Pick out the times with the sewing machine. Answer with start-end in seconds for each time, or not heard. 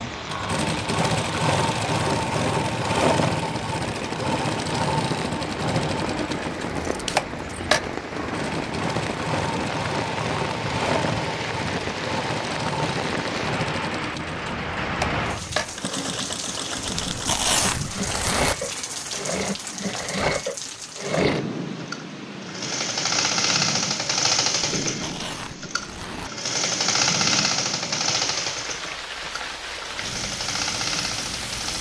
0.0-31.7.